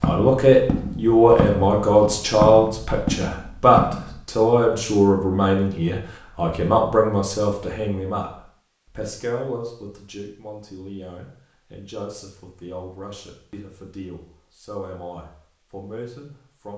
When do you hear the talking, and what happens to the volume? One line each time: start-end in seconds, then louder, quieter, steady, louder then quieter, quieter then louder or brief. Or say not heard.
0.0-16.7 quieter.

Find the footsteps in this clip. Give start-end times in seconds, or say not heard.
0.0-4.2.